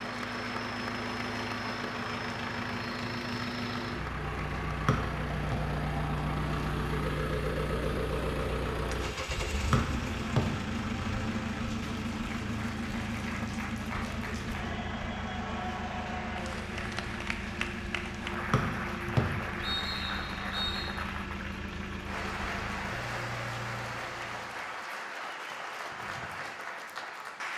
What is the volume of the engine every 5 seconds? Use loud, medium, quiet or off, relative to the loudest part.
loud, loud, loud, medium, medium, off.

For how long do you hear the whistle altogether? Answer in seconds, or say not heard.
4 s.